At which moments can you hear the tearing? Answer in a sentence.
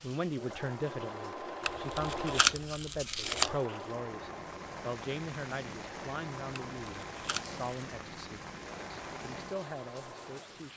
You can hear the tearing from 1.6 to 3.5 s and from 6.5 to 8.0 s.